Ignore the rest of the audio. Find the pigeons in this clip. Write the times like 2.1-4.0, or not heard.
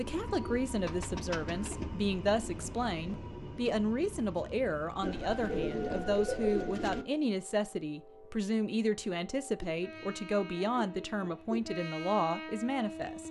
0.2-1.9, 5.0-7.0, 9.6-11.6.